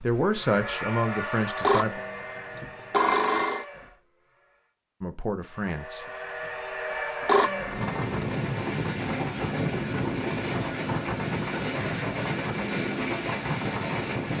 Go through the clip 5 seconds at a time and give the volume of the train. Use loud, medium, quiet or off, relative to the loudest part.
medium, loud, loud.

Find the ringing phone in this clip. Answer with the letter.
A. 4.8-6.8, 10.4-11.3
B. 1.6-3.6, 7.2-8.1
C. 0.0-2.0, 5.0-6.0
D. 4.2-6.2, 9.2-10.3
B.